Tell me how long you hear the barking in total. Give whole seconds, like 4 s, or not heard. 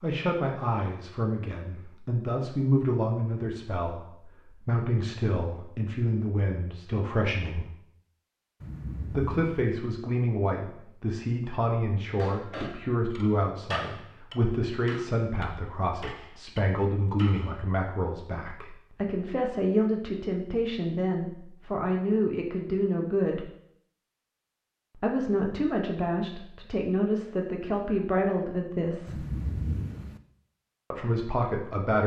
not heard.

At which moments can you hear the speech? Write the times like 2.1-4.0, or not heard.
0.0-7.7, 9.1-23.5, 24.9-29.2, 30.9-32.0.